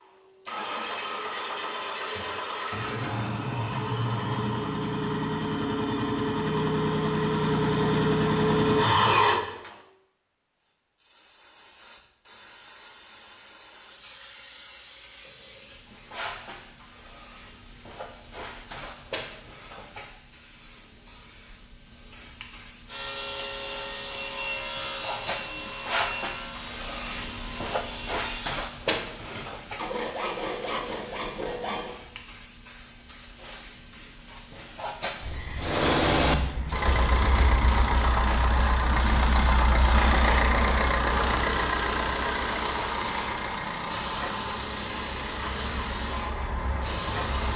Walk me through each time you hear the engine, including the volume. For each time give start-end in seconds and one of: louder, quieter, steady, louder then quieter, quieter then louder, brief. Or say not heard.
0.0-9.8 louder
35.5-47.5 quieter.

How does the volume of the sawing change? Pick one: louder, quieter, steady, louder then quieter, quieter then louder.
quieter then louder.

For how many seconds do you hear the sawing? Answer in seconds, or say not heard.
9 s.